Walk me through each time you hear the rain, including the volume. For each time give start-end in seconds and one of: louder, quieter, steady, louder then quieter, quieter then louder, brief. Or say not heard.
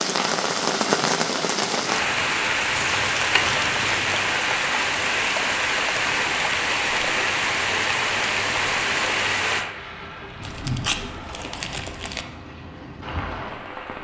0.0-14.0 quieter.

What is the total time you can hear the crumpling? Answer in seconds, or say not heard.
3 s.